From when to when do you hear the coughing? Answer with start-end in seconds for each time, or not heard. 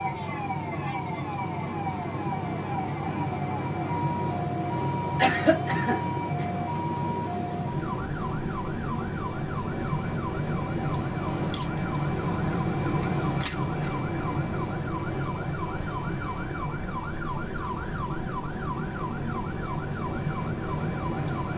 5.2-6.5.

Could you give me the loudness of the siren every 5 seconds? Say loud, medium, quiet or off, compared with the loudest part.
loud, loud, medium, loud, medium.